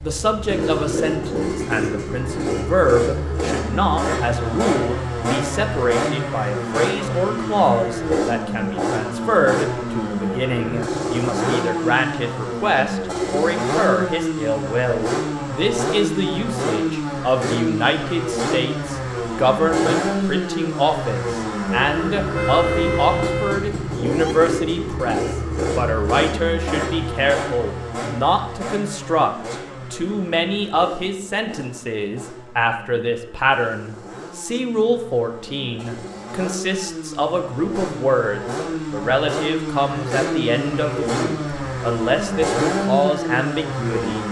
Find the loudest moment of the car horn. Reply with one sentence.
The volume of the car horn peaks at 23 seconds.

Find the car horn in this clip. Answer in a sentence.
The car horn can be heard from 22.3 to 24.4 s.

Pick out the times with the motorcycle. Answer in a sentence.
You can hear the motorcycle from 0.0 to 44.2 s.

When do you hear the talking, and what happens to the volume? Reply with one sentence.
You can hear the talking from 0.0 to 44.2 s, at a steady volume.